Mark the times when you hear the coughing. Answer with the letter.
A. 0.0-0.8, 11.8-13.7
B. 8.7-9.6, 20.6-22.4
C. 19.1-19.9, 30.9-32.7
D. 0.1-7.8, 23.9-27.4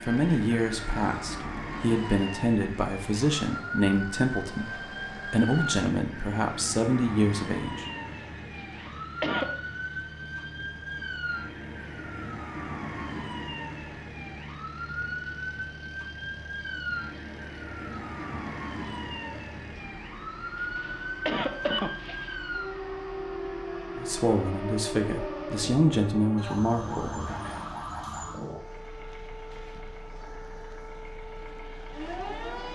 B.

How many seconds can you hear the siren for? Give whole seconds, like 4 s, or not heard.
33 s.